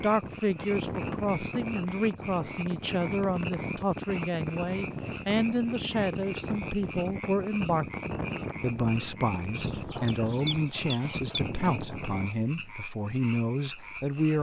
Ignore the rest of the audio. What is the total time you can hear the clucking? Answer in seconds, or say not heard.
2 s.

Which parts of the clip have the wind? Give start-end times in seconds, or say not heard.
0.0-12.3.